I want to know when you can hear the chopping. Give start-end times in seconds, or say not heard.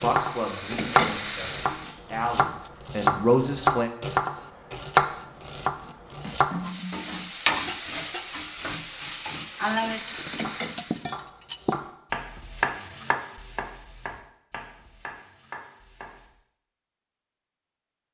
0.0-6.5, 9.7-16.3.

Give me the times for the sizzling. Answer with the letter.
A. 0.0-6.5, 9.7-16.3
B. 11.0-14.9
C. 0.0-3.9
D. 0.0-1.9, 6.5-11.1
D.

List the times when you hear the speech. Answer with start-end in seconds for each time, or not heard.
0.0-3.9.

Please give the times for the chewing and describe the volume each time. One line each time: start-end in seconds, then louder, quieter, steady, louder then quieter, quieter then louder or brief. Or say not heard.
not heard.